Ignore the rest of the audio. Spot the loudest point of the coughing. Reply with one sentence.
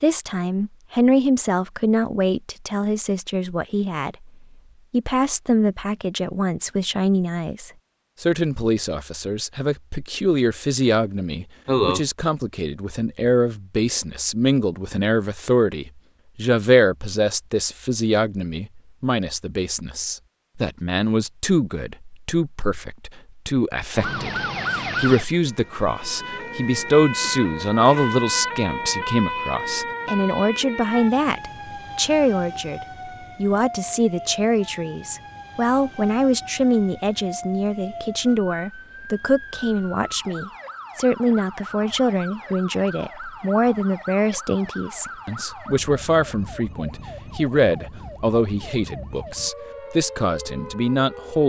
The volume of the coughing peaks at 12 seconds.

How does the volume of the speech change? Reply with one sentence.
The volume of the speech stays about the same.